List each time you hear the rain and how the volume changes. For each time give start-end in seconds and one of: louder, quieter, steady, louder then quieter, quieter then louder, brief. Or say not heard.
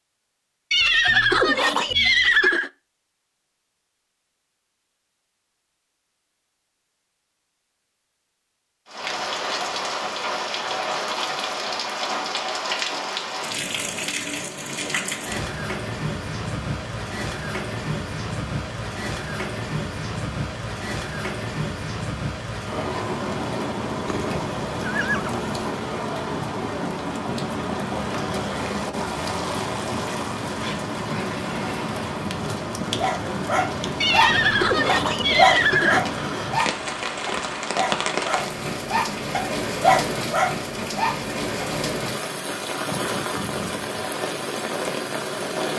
8.8-45.7 steady.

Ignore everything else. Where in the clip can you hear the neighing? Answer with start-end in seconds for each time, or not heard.
0.7-2.7, 24.1-25.6, 34.0-36.0.